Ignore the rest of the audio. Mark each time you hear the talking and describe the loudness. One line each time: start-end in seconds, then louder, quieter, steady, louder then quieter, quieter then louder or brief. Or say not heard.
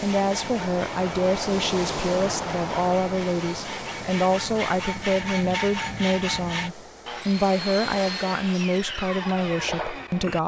0.0-10.4 steady.